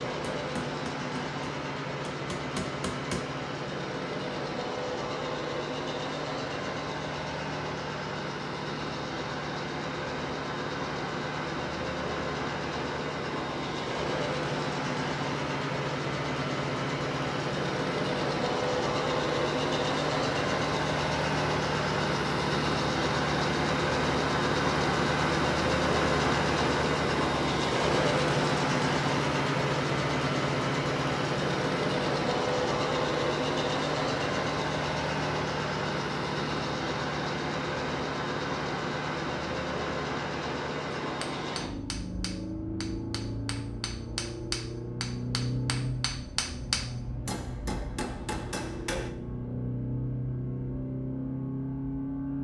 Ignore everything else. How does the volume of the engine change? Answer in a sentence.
The volume of the engine goes up, then down.